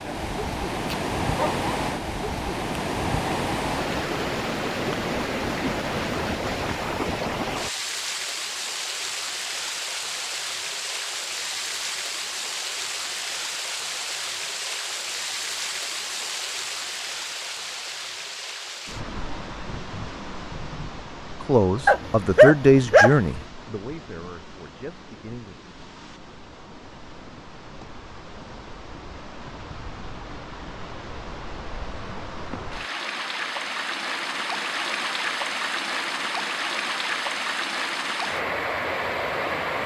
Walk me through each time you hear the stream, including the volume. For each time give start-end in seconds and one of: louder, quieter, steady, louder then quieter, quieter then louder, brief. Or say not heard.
0.0-39.8 quieter then louder.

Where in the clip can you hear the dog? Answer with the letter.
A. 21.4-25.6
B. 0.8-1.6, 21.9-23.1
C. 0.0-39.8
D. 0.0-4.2
B.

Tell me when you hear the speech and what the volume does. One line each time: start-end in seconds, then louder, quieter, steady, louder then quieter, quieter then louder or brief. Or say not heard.
21.4-25.6 louder then quieter.